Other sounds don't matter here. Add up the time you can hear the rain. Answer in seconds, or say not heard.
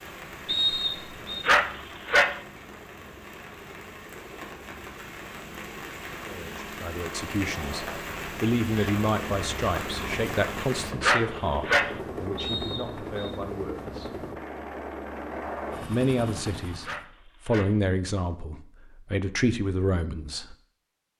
11 s.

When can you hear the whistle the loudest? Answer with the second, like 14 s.
1 s.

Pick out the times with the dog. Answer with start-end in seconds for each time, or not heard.
1.4-2.4, 11.0-11.9, 16.8-17.8.